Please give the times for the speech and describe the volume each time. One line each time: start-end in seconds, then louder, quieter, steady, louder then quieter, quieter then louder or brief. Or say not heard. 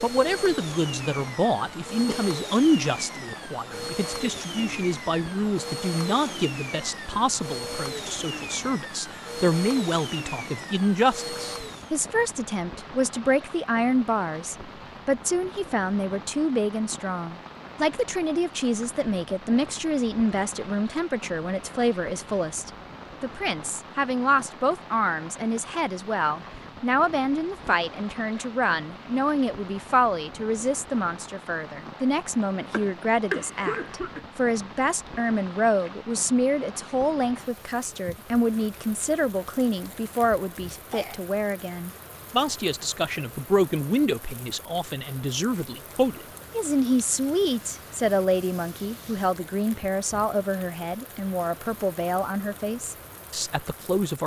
0.0-54.2 steady.